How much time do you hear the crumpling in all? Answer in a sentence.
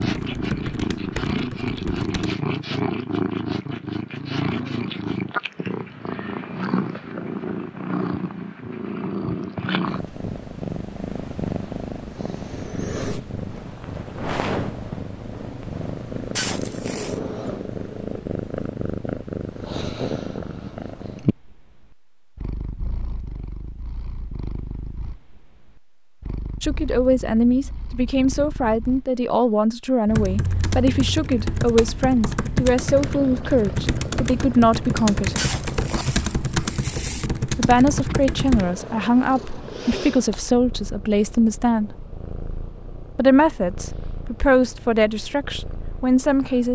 The crumpling can be heard for 3 seconds in total.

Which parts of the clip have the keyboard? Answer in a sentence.
The keyboard can be heard from 0.0 to 2.4 s and from 30.1 to 38.8 s.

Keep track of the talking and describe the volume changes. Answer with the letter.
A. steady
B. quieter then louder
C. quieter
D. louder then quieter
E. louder
A.